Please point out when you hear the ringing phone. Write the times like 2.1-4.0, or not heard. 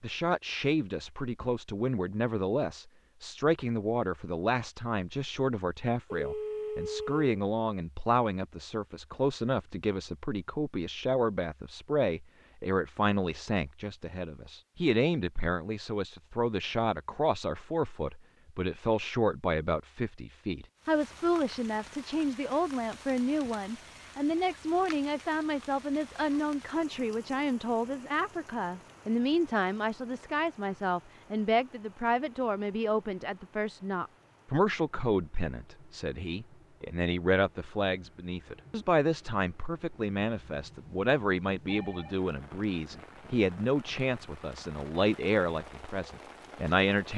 6.1-7.3, 41.6-42.1.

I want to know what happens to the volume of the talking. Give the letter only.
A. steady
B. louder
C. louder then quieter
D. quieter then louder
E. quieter
A.